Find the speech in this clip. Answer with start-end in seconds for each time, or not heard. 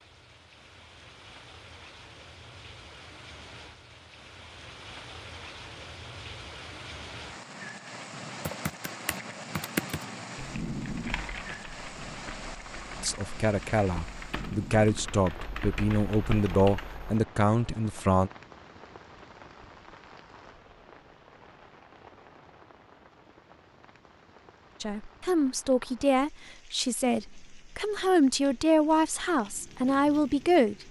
13.0-18.3, 24.8-30.8.